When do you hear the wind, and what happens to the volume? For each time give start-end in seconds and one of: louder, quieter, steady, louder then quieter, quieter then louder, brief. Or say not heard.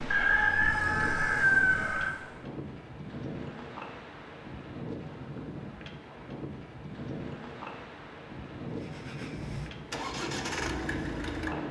0.0-11.6 steady.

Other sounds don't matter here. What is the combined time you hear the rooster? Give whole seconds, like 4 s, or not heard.
2 s.